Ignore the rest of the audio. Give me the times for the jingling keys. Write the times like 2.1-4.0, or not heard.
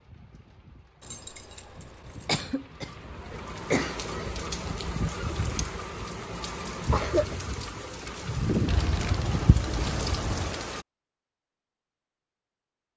1.0-2.5, 5.2-5.8, 8.7-10.6.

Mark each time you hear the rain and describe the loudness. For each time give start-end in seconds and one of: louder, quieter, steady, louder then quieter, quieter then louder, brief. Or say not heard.
0.0-10.8 louder.